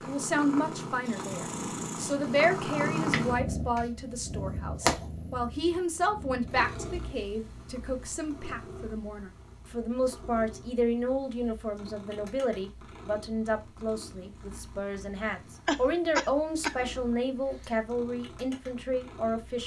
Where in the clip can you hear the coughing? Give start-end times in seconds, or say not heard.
15.7-16.8.